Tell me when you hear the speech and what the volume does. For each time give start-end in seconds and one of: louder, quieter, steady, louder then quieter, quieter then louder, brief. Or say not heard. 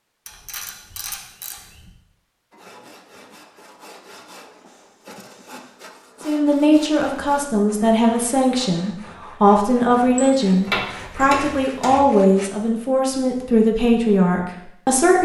6.2-15.2 steady.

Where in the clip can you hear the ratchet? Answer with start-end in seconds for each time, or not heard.
0.2-1.9, 10.2-11.9.